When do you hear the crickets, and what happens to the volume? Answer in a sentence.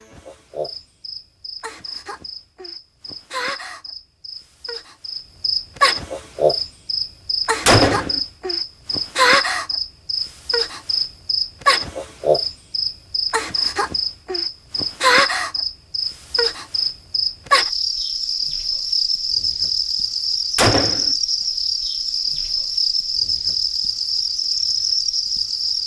The crickets can be heard from 0.0 to 25.8 s, getting louder.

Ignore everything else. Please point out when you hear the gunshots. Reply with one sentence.
The gunshots can be heard from 7.7 to 8.2 s and from 20.6 to 21.1 s.